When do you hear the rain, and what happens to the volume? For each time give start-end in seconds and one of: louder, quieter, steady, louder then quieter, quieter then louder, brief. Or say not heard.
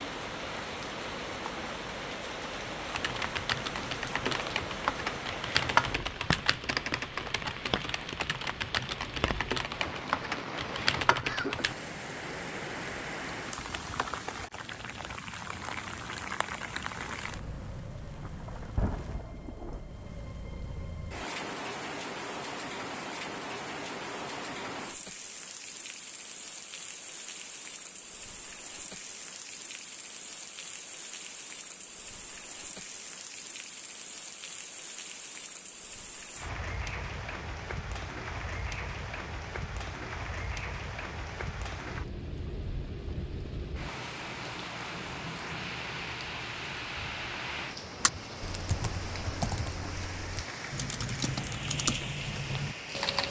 0.0-53.2 steady.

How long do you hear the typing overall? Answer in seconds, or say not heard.
14 s.